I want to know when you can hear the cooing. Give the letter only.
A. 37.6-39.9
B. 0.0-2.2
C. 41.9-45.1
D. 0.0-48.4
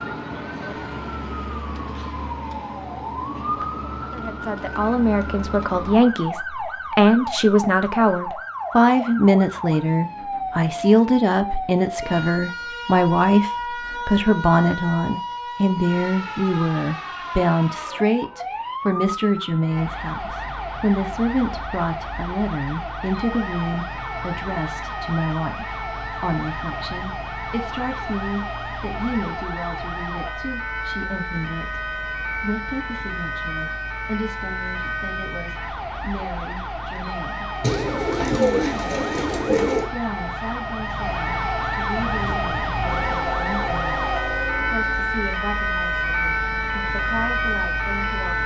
A.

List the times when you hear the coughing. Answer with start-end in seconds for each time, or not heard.
not heard.